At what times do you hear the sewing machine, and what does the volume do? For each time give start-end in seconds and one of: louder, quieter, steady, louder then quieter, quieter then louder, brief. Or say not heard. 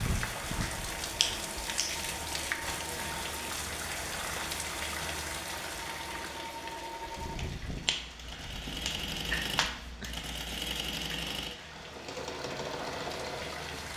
0.0-13.9 louder.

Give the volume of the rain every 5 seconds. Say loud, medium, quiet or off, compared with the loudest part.
loud, medium, medium.